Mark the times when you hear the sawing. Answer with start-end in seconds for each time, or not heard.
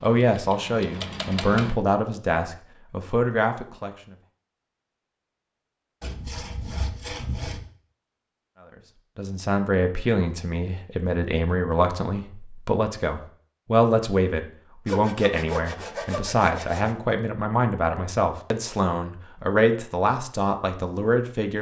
6.0-7.7, 14.8-16.9.